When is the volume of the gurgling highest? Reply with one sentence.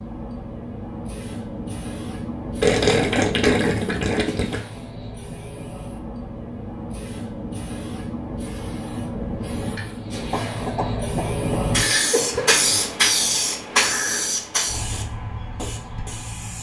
The volume of the gurgling peaks at 3 seconds.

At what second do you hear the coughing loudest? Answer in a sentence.
The volume of the coughing peaks at 12 seconds.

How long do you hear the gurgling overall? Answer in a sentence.
The gurgling can be heard for 2 seconds in total.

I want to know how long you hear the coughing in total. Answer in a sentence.
The coughing can be heard for 2 seconds in total.